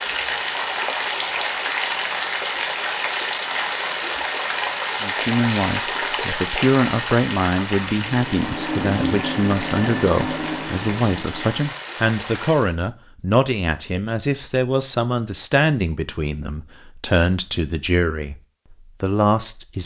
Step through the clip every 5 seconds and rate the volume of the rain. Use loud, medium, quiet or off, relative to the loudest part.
loud, loud, medium, off.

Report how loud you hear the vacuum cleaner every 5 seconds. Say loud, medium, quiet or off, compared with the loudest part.
off, loud, loud, off.